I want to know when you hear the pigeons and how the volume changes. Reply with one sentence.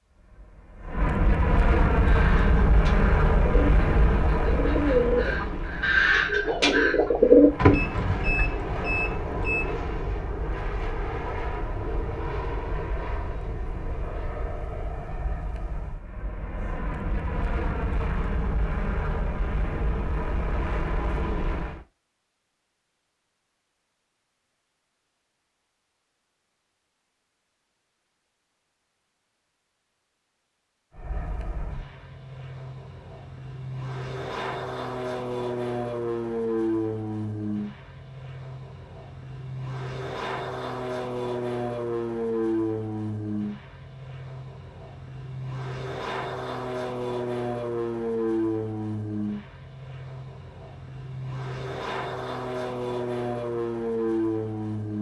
You can hear the pigeons from 1.9 to 8.5 s, getting louder.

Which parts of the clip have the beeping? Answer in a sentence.
The beeping can be heard from 7.7 to 9.7 s.